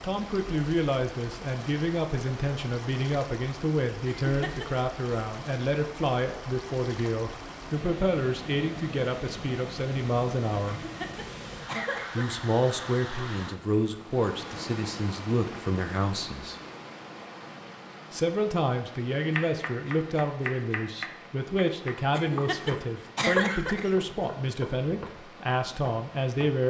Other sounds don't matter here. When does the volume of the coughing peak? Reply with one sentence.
The volume of the coughing peaks at 23 seconds.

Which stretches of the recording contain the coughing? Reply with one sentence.
You can hear the coughing from 4.2 to 5.2 s, from 10.7 to 12.4 s and from 22.1 to 23.9 s.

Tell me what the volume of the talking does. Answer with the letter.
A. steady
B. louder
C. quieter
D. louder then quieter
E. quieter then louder
A.